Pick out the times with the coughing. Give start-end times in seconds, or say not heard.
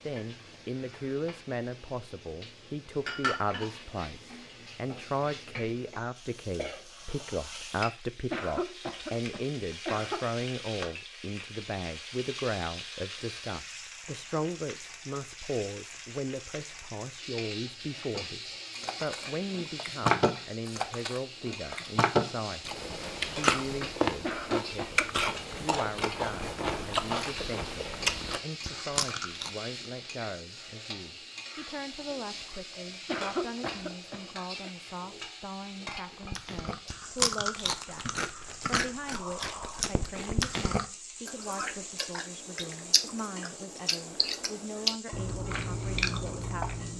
8.3-10.3, 24.2-25.3, 33.0-34.7.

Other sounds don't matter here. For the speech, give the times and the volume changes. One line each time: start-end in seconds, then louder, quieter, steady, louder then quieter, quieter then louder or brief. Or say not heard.
0.1-38.0 quieter
38.6-46.9 steady.